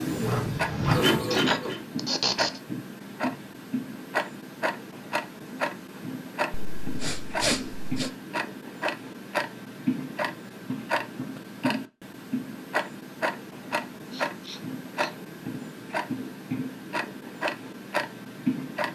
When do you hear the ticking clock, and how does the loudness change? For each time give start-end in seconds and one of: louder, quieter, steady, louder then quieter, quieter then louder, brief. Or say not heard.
0.0-18.9 steady.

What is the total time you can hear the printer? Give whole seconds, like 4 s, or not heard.
2 s.